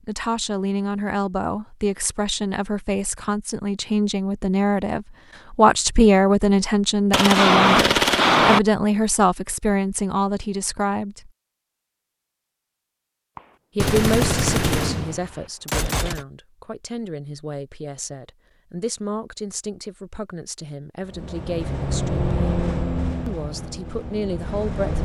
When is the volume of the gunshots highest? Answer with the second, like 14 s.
8 s.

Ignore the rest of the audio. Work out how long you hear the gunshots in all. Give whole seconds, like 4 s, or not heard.
4 s.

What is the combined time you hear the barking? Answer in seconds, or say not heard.
not heard.